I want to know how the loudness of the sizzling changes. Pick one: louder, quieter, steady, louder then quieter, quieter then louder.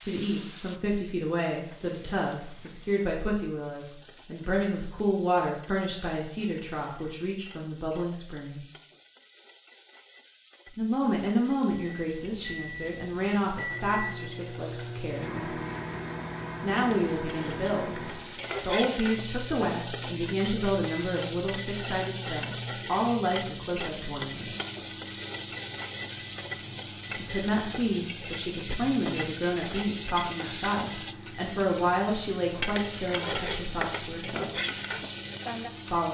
louder.